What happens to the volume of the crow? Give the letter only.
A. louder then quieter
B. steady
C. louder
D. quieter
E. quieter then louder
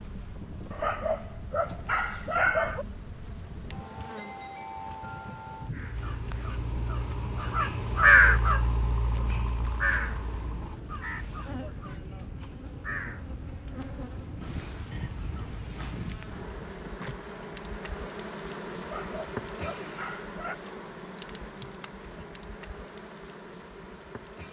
A.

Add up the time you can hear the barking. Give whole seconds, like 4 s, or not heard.
4 s.